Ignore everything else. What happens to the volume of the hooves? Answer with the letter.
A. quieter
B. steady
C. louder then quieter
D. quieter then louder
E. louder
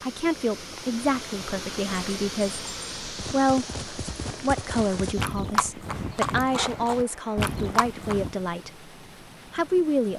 E.